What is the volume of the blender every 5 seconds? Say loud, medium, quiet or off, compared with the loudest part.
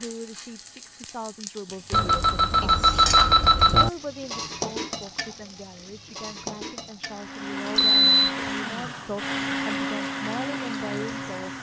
off, loud, loud.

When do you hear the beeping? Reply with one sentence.
The beeping can be heard from 1.9 to 3.9 s and from 7.8 to 8.3 s.